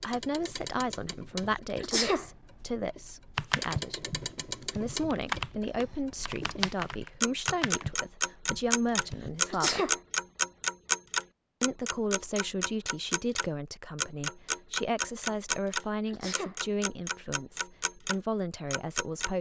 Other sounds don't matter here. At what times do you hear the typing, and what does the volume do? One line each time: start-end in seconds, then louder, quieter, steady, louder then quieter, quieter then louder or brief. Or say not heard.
3.4-9.4 quieter.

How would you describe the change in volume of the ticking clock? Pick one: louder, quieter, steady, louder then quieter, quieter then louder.
louder then quieter.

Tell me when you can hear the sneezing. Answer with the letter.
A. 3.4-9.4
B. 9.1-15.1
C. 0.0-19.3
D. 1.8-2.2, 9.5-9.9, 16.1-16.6
D.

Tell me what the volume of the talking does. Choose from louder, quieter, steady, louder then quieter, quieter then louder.
steady.